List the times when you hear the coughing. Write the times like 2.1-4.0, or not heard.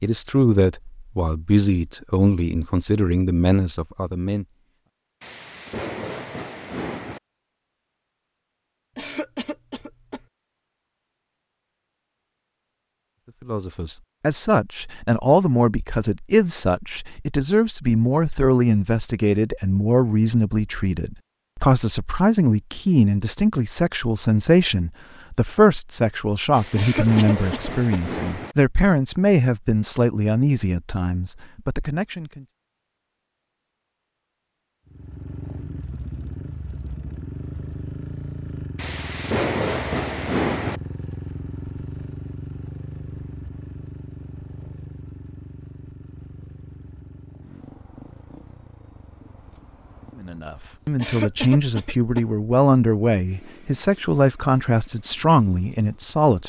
8.9-10.2, 26.8-28.1, 51.0-52.2.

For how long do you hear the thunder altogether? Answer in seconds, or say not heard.
6 s.